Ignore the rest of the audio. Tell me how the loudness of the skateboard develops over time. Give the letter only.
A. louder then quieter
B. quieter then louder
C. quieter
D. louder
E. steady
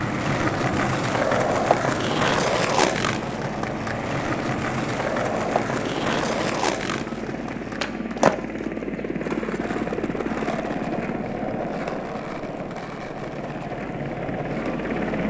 C.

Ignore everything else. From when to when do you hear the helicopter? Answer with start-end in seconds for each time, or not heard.
0.0-15.2.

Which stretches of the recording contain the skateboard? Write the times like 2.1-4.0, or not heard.
0.0-15.2.